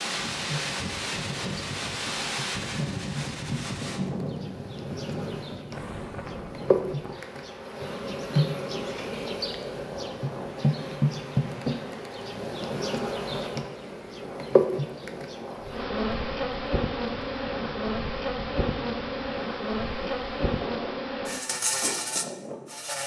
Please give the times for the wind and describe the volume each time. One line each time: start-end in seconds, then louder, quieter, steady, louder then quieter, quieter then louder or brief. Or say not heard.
0.0-23.0 quieter.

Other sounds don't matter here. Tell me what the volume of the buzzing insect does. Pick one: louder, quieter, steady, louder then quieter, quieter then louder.
louder.